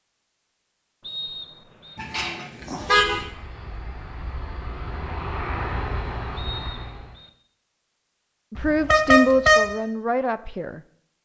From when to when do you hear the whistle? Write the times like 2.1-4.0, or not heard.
1.0-2.0, 6.3-7.3.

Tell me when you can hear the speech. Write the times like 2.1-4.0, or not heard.
8.5-10.8.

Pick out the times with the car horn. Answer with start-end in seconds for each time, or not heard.
1.9-3.2, 8.6-9.7.